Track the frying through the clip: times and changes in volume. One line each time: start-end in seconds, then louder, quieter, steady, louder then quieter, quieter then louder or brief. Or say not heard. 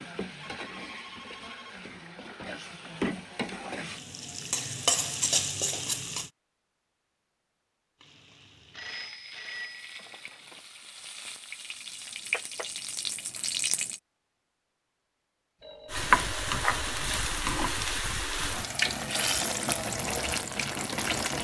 0.0-6.3 louder
8.0-14.0 louder
15.9-21.3 steady.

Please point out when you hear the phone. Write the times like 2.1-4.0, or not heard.
0.4-1.8, 8.7-10.7, 15.6-17.1.